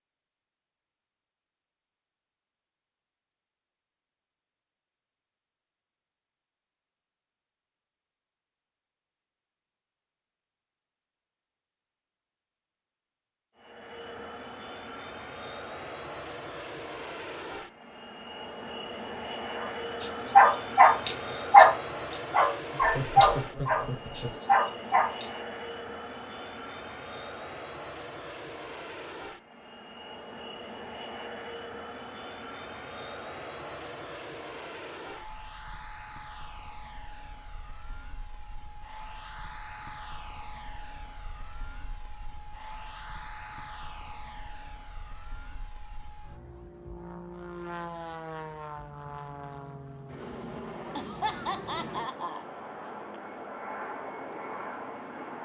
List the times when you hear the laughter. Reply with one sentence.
The laughter can be heard from 22.8 to 24.4 s and from 51.0 to 52.5 s.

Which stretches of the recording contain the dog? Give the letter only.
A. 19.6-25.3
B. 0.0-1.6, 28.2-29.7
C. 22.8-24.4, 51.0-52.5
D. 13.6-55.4
A.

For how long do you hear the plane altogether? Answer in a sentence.
You can hear the plane for 42 seconds altogether.